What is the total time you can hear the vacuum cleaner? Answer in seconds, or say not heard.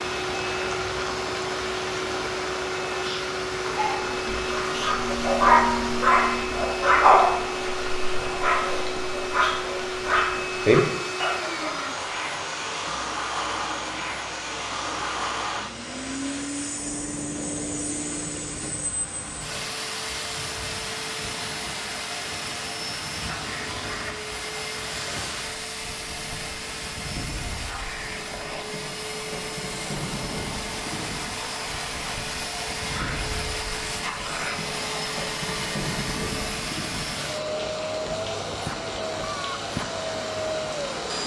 41 s.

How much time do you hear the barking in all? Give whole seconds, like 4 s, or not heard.
8 s.